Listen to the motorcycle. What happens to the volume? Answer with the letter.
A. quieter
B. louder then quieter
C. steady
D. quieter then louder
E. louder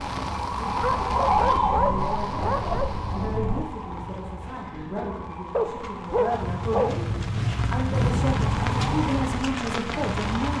B.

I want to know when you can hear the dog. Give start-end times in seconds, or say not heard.
0.8-3.6, 5.5-7.0.